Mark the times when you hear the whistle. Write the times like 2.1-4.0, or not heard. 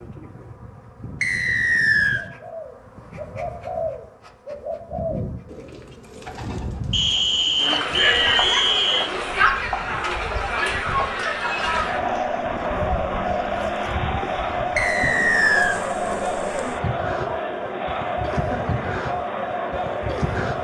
1.2-2.2, 6.9-9.1, 14.8-15.8.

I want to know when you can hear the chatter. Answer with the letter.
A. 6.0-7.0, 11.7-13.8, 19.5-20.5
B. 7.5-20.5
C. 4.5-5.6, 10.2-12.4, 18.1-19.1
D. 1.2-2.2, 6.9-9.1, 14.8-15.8
B.